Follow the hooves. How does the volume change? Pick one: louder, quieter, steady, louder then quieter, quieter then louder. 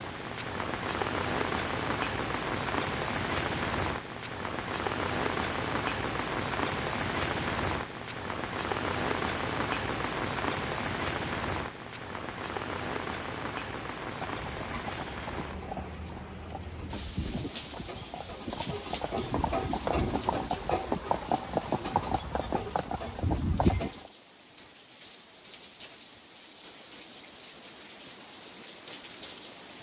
louder.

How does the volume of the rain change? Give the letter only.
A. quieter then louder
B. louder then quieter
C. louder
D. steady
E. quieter
E.